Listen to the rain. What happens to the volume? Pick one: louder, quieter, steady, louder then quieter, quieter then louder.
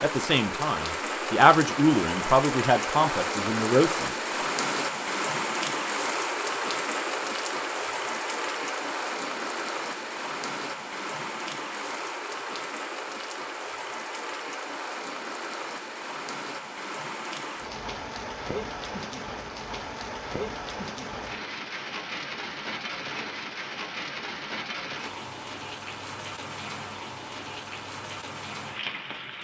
quieter.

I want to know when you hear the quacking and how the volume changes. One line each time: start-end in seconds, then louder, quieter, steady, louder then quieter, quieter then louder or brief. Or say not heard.
not heard.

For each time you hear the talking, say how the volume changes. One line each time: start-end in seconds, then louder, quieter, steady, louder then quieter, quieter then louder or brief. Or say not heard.
0.0-4.2 louder then quieter.